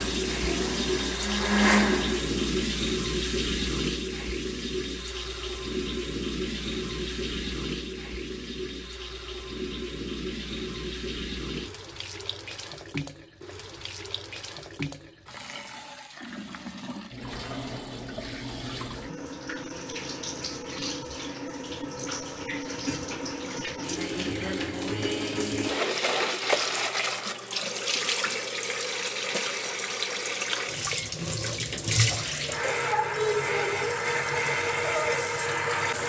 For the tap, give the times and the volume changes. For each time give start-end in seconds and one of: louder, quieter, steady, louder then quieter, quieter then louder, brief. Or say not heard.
0.0-36.0 quieter then louder.